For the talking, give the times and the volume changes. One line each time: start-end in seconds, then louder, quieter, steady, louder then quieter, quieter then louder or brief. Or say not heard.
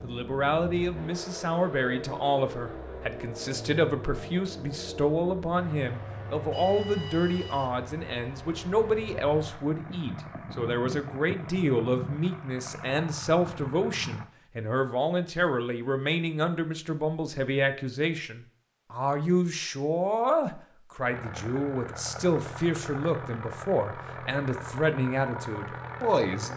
0.0-26.5 steady.